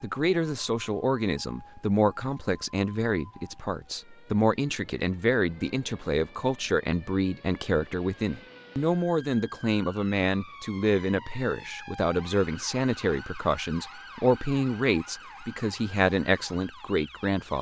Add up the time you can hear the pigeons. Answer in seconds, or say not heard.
not heard.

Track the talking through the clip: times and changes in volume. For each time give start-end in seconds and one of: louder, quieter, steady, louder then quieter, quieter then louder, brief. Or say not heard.
0.0-17.5 steady.